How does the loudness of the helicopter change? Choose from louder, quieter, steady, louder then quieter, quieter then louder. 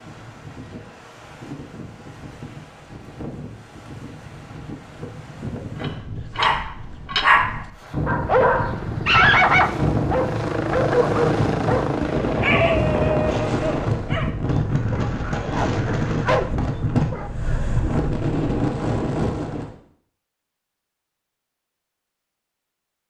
louder then quieter.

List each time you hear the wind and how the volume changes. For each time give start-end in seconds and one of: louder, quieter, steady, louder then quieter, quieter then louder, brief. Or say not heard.
0.0-19.7 louder.